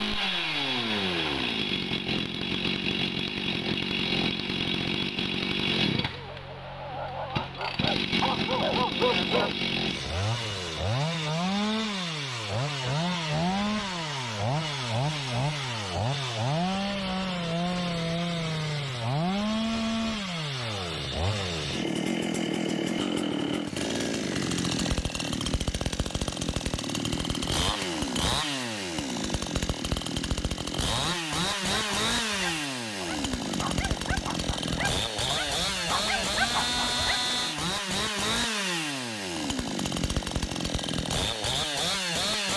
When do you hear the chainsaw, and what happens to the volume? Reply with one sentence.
The chainsaw can be heard from 0.0 to 42.5 s, at a steady volume.